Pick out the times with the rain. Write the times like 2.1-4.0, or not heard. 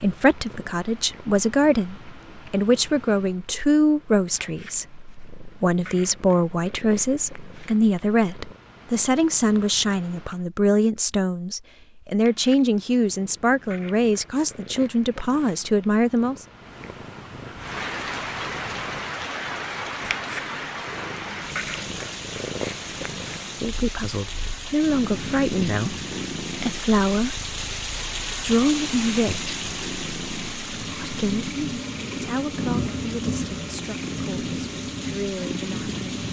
17.5-36.2.